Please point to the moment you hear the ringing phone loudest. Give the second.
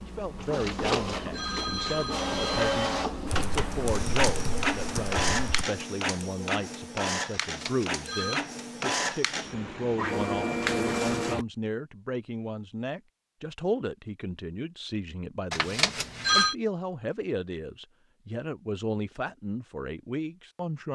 16 s.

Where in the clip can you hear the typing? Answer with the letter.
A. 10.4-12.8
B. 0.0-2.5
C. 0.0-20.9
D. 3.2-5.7
D.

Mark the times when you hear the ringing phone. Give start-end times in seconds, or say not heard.
0.7-2.7, 7.3-8.4, 15.5-16.6.